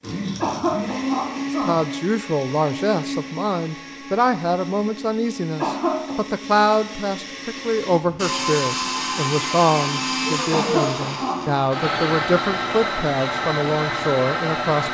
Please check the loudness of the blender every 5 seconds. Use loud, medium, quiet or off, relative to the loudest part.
medium, loud, loud.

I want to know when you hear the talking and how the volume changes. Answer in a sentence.
The talking can be heard from 1.6 to 14.8 s, at a steady volume.